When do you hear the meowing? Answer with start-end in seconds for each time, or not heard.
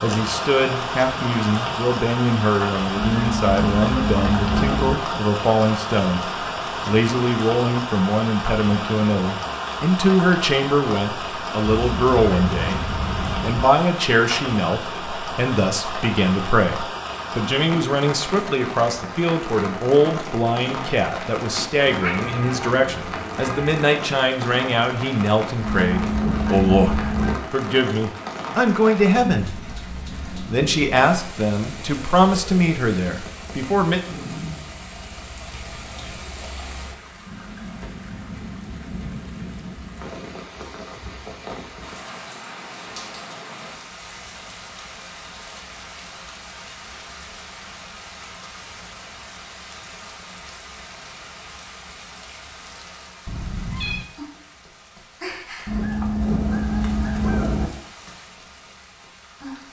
11.8-13.7, 21.9-23.9, 53.2-54.0.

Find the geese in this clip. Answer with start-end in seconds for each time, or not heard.
3.0-5.0, 25.6-27.4, 55.6-57.7.